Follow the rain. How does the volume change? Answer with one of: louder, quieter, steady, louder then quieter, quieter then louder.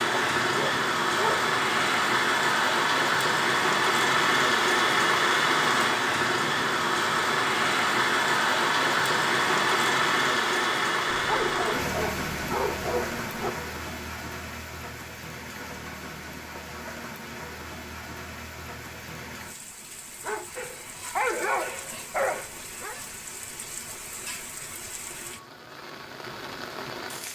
quieter.